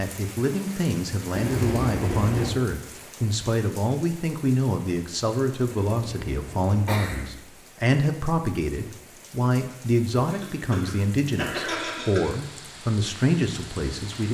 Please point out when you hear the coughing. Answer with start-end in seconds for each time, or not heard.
1.3-2.5, 5.8-7.2, 10.3-12.3.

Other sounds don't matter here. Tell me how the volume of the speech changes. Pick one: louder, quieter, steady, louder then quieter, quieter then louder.
steady.